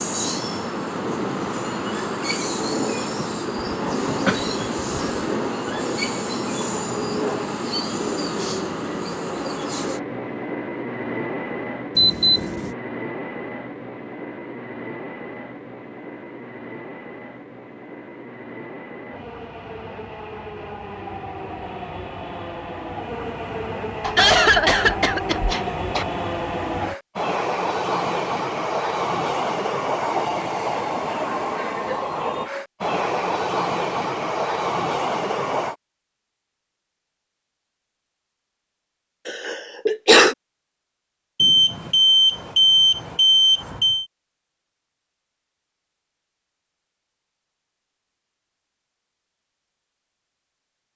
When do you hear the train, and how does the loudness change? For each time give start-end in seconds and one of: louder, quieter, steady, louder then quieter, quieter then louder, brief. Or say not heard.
0.0-35.8 quieter then louder.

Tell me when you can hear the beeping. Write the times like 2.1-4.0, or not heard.
11.9-12.8, 41.4-44.0.